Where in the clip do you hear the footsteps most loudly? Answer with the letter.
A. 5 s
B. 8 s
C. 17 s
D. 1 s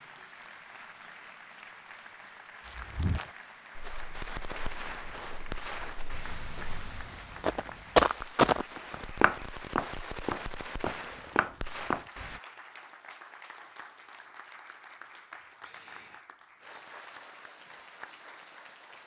B.